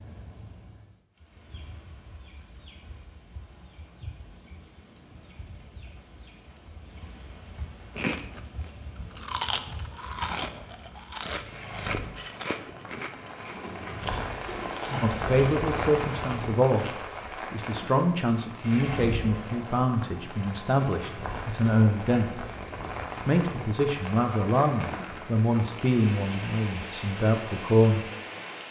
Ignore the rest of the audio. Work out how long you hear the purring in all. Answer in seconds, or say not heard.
not heard.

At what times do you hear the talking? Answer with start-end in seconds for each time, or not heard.
15.0-16.9, 17.5-22.4, 23.2-28.1.